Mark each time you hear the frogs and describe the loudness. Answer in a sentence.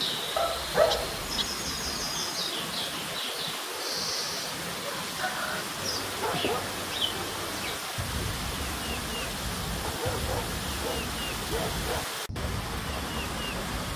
You can't hear the frogs here.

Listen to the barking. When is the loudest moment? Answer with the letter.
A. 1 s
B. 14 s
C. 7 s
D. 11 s
A.